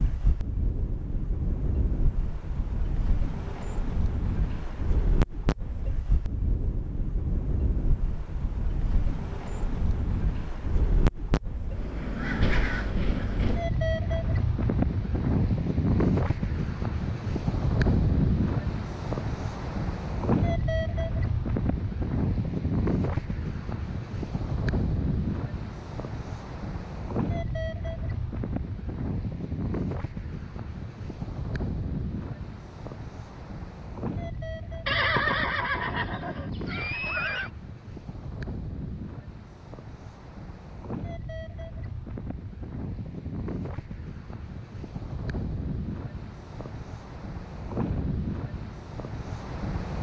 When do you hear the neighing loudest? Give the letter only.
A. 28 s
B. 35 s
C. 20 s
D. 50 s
B.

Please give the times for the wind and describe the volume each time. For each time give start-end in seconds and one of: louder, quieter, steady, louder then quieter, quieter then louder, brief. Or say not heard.
0.0-49.9 louder then quieter.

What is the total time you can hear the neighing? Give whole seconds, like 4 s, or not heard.
3 s.